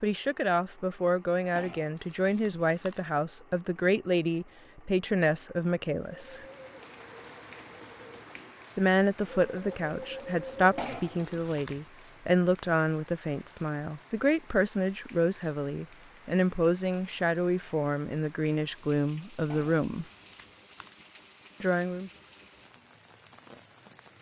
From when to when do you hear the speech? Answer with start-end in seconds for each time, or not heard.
0.0-6.5, 8.8-20.1, 21.6-22.1.